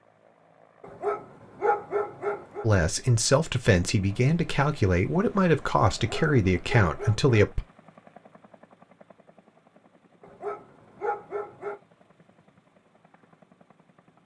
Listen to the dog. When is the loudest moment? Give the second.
2 s.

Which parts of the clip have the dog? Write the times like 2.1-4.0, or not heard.
0.8-2.6, 6.0-7.3, 10.2-11.8.